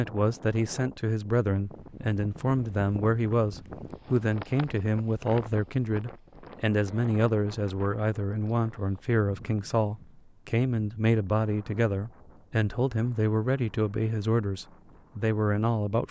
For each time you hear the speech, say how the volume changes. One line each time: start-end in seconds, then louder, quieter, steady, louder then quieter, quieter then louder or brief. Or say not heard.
0.0-16.0 steady.